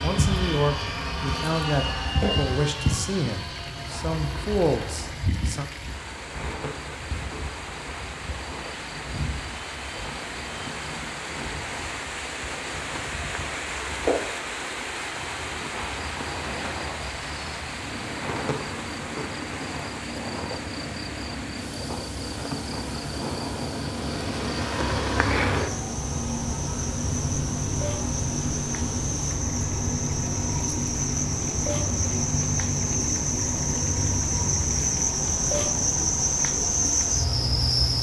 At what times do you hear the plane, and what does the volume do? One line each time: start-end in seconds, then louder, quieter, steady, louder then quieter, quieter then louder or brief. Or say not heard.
0.0-37.9 quieter then louder.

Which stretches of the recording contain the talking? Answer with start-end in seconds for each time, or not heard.
0.0-5.7.